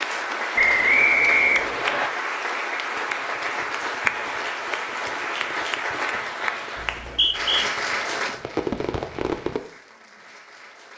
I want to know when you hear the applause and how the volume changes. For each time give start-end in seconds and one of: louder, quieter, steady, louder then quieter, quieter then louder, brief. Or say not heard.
0.0-10.9 quieter.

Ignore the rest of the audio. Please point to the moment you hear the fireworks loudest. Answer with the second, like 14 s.
9 s.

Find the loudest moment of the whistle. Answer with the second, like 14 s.
1 s.